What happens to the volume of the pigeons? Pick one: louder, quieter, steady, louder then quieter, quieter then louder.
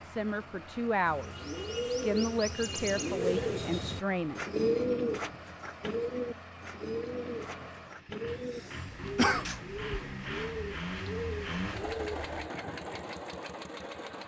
quieter.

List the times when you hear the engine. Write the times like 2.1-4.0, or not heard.
0.0-14.2.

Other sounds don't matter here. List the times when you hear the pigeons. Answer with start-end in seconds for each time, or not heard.
1.0-12.5.